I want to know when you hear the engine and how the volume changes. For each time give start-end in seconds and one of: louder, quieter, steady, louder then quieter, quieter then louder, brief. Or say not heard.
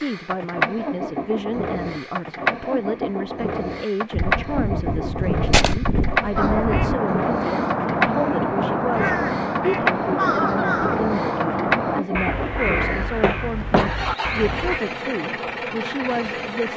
0.0-16.7 steady.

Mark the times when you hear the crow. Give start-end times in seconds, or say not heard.
6.3-14.8.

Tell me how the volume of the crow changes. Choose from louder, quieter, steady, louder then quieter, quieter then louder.
steady.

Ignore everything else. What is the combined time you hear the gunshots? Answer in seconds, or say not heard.
3 s.